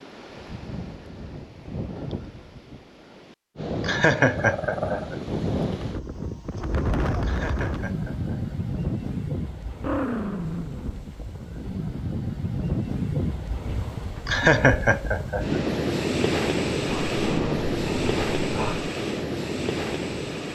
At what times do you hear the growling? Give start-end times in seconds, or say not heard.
4.3-5.1, 9.7-11.8, 16.9-18.9.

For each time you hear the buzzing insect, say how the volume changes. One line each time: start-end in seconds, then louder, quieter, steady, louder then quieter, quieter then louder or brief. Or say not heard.
not heard.